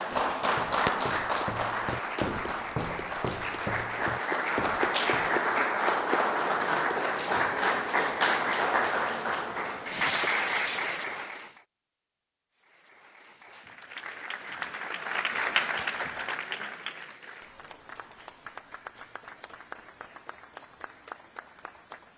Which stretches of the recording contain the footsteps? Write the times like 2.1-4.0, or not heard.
0.1-5.4.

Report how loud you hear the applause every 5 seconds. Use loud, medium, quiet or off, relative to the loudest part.
loud, loud, medium, medium, quiet.